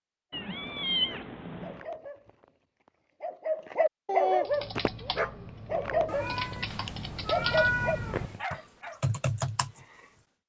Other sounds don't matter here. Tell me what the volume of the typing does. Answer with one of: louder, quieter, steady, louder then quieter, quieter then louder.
louder.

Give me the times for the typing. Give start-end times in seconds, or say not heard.
4.5-10.1.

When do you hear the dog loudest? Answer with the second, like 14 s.
4 s.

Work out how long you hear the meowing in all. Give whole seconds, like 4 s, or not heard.
4 s.